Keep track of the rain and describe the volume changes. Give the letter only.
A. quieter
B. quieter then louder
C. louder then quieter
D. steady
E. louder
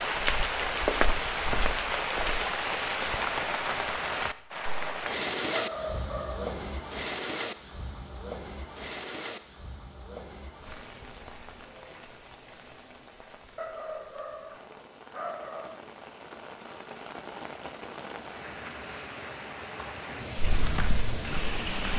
B.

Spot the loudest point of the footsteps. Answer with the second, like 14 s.
1 s.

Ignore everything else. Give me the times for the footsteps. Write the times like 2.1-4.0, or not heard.
0.0-2.5, 20.4-21.9.